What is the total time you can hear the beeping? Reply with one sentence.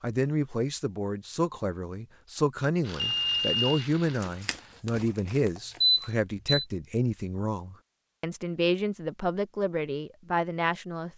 The beeping can be heard for 2 seconds in total.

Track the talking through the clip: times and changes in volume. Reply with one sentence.
The talking can be heard from 0.0 to 11.1 s, at a steady volume.